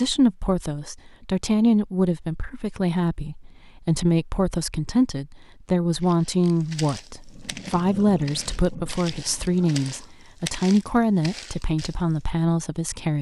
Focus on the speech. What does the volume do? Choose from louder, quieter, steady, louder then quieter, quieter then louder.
steady.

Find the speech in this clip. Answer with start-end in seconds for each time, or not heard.
0.0-13.1.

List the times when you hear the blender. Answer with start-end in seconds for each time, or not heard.
not heard.